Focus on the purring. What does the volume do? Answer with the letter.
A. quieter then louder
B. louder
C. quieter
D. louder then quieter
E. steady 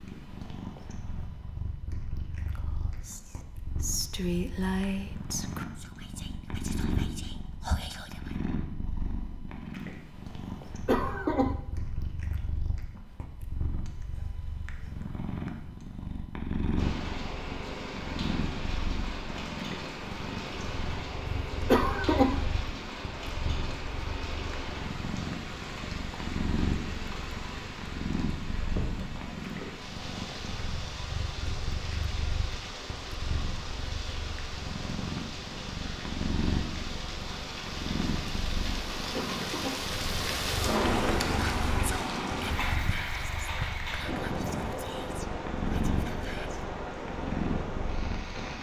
E.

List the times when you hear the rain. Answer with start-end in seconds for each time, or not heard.
16.8-48.5.